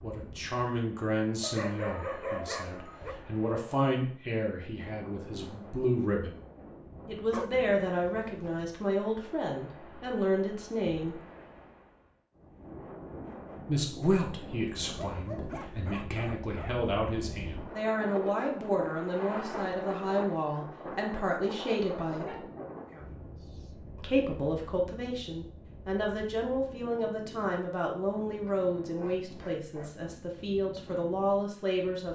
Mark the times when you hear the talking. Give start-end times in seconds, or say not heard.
0.0-6.3, 7.0-11.2, 13.7-22.4, 23.9-32.1.